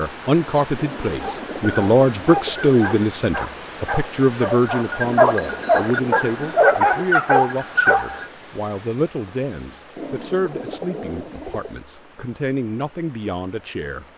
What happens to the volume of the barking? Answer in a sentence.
The loudness of the barking goes up.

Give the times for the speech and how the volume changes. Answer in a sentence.
The speech can be heard from 0.0 to 14.1 s, getting quieter.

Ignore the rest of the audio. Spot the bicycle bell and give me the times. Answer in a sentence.
The bicycle bell can't be heard in this clip.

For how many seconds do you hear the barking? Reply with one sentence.
The barking can be heard for 7 seconds in total.